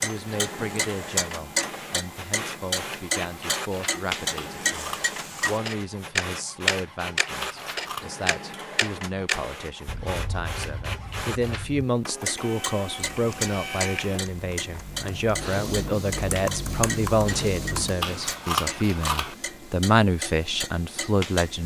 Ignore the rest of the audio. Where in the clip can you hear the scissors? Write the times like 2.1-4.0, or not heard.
4.3-5.5, 7.4-8.1, 18.0-19.4.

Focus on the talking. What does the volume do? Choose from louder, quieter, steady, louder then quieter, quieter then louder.
louder.